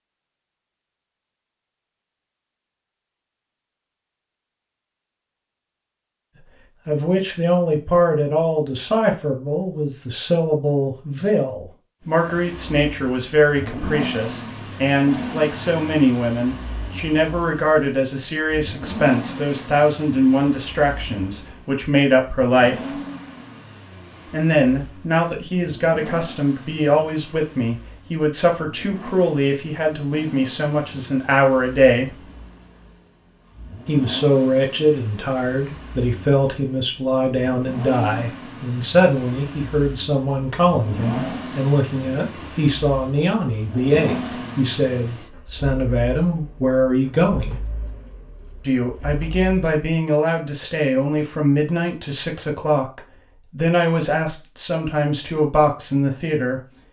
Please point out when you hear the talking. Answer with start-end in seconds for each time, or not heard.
6.4-22.9, 24.2-32.2, 33.9-47.6, 48.6-56.6.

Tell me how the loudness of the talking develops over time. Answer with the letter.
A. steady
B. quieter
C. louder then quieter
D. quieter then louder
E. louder
A.